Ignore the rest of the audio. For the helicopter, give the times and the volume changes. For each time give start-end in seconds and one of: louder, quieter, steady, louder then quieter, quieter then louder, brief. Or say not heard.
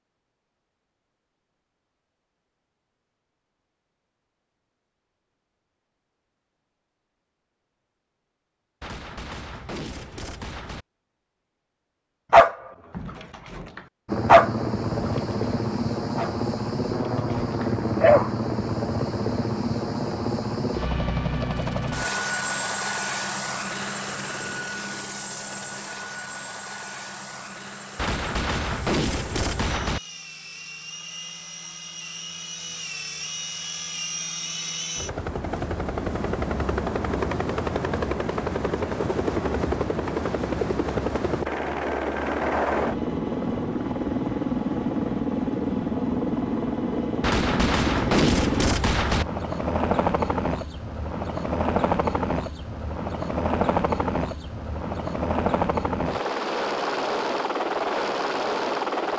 14.1-59.1 quieter then louder.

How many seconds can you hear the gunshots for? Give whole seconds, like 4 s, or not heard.
6 s.